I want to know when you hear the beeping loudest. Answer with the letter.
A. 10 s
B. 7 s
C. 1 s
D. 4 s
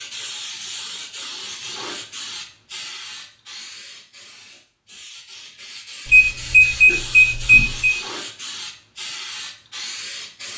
B.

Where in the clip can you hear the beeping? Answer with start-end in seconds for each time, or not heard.
6.0-8.0.